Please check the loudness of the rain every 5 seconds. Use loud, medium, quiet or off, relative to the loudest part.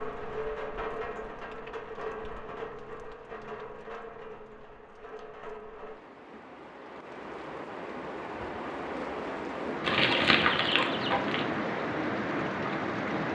medium, medium, loud.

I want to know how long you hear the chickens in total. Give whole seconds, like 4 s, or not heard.
2 s.